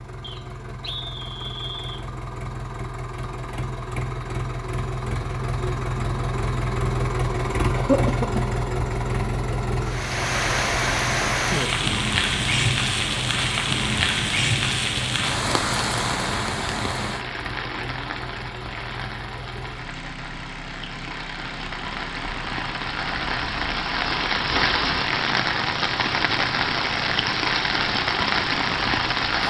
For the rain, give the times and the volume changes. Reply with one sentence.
You can hear the rain from 9.8 to 29.4 s, getting quieter then louder.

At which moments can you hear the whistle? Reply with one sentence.
You can hear the whistle from 0.2 to 2.0 s.